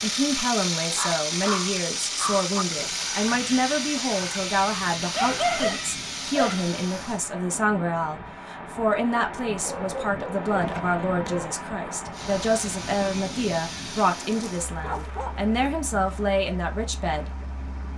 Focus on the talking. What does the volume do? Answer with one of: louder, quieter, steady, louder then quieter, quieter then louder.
steady.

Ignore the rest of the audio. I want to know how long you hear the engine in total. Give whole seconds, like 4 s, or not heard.
13 s.